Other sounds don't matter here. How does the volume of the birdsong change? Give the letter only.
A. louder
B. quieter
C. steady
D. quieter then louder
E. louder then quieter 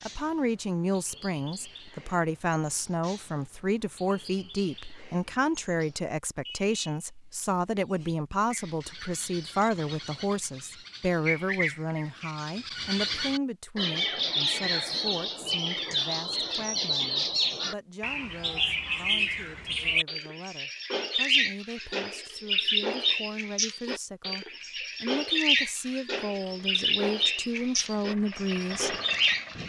A.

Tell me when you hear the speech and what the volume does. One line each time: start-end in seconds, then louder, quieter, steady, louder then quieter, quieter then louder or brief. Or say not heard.
0.1-28.9 quieter then louder.